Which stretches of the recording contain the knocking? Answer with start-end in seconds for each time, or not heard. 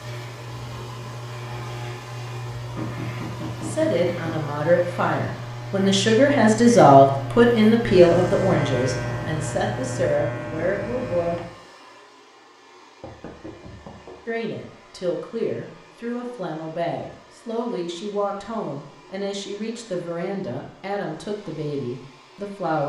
2.8-4.5, 13.0-14.2.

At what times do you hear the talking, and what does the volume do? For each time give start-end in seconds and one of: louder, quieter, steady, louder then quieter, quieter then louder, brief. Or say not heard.
3.6-11.4 louder then quieter
14.2-22.8 steady.